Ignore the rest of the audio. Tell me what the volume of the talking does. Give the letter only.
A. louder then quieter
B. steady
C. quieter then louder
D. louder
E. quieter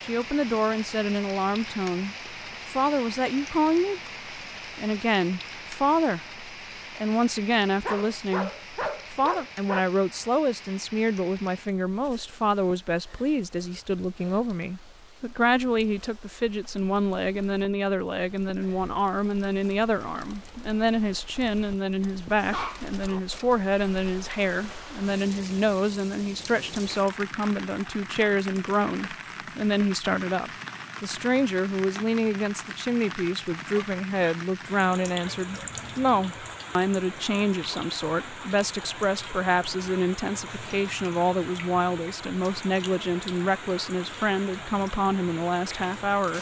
B.